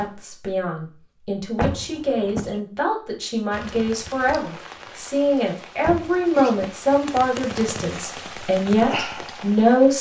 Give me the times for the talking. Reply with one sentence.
You can hear the talking from 0.0 to 9.9 s.